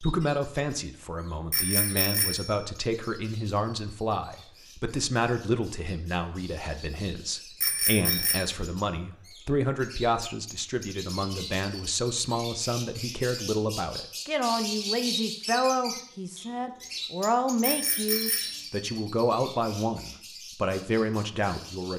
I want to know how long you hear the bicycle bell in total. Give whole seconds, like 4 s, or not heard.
3 s.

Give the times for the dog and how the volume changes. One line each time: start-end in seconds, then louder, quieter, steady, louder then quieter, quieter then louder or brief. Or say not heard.
not heard.